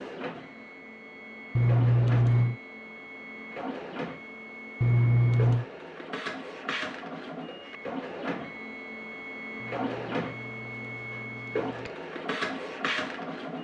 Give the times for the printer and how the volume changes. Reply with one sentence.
The printer can be heard from 0.0 to 13.5 s, getting louder.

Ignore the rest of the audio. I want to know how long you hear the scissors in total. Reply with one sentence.
The scissors can be heard for 4 seconds in total.